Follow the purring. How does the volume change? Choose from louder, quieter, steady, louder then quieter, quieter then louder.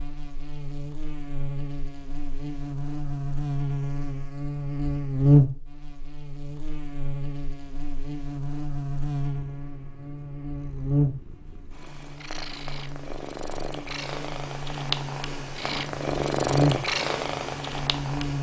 louder.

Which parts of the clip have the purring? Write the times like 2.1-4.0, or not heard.
9.3-18.3.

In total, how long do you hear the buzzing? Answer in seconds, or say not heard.
18 s.